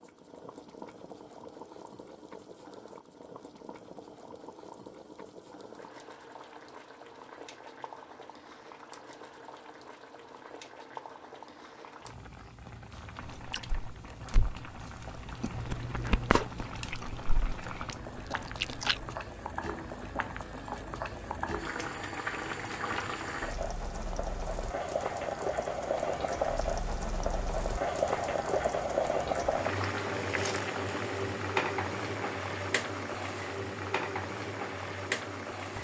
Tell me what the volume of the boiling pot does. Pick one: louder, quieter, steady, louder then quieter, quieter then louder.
louder.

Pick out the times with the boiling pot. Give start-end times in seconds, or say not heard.
0.0-35.7.